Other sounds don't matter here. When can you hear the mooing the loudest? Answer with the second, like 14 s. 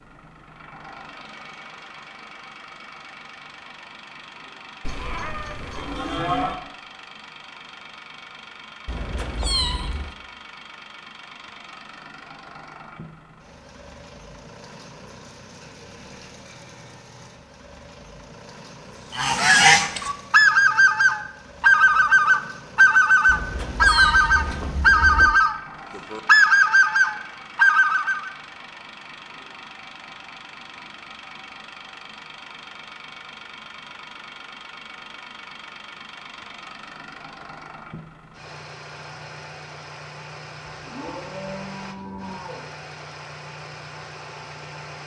6 s.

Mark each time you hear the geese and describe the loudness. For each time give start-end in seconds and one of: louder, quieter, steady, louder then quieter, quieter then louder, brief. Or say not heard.
19.1-28.3 steady.